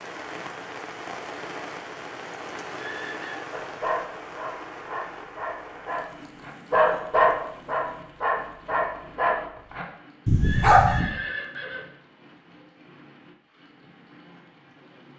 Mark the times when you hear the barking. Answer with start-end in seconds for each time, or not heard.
3.5-11.1.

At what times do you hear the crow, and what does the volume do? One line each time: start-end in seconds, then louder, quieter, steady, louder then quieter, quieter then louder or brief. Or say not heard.
not heard.